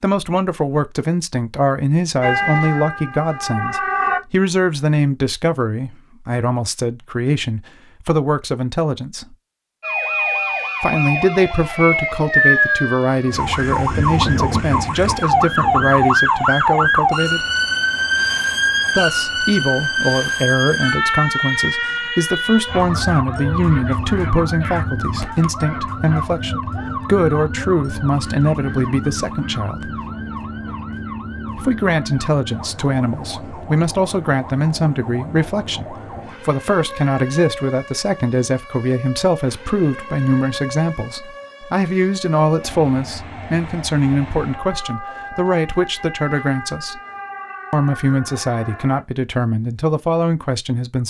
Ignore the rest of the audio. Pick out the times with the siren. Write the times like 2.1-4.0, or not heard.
2.2-4.2, 9.8-49.0.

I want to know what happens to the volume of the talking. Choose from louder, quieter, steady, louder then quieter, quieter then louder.
steady.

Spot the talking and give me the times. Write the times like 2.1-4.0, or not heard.
0.0-9.3, 10.8-17.4, 18.9-29.9, 31.6-47.0, 47.7-51.0.